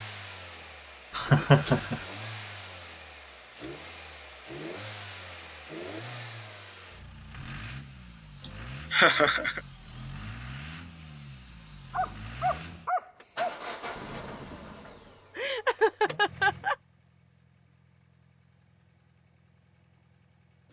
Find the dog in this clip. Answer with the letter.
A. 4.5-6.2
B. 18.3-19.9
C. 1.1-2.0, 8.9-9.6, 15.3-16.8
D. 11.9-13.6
D.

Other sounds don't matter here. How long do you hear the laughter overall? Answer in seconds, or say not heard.
3 s.